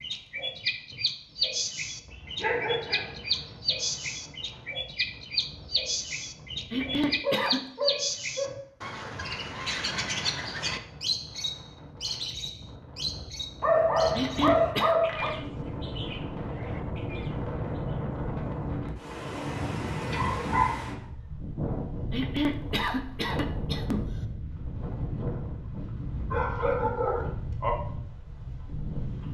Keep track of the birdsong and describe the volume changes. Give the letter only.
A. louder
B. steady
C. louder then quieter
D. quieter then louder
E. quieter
E.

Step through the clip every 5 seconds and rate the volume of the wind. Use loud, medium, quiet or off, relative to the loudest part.
quiet, quiet, medium, loud, loud, loud.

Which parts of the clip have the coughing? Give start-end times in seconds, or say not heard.
6.7-7.7, 14.2-14.9, 22.1-24.1.